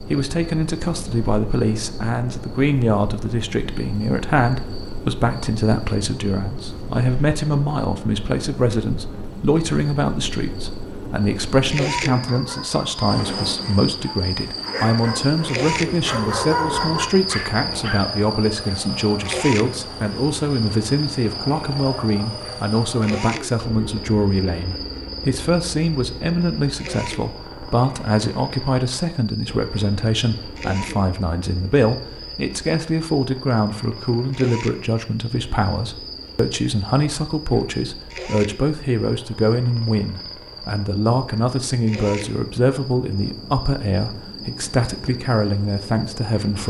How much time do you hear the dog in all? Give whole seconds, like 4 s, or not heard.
6 s.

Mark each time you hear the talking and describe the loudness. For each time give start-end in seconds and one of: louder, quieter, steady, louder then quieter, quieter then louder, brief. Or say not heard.
0.1-46.6 steady.